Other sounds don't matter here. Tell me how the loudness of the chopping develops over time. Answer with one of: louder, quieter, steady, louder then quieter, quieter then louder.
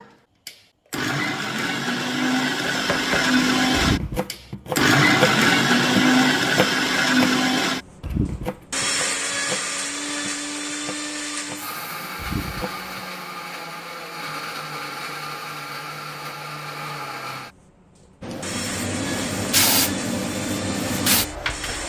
quieter.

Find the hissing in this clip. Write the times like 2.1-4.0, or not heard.
18.2-21.8.